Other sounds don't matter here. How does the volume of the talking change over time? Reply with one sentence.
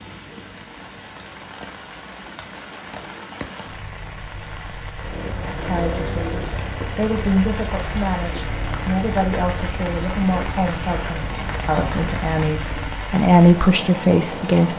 The volume of the talking goes up.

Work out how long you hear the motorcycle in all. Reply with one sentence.
You can hear the motorcycle for 8 seconds altogether.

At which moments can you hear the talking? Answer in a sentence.
The talking can be heard from 5.3 to 14.7 s.